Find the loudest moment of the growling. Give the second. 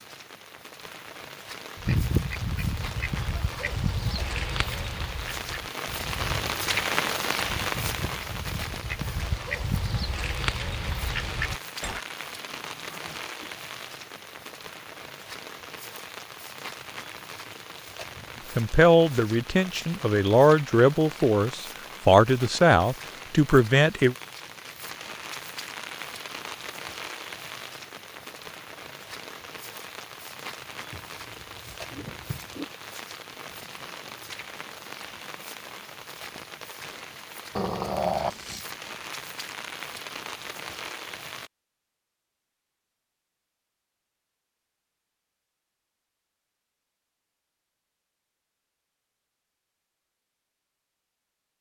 38 s.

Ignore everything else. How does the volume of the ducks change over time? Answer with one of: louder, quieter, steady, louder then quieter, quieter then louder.
quieter then louder.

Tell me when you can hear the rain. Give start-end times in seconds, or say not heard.
0.0-41.5.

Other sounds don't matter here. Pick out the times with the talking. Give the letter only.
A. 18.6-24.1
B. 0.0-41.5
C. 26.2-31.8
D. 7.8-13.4
A.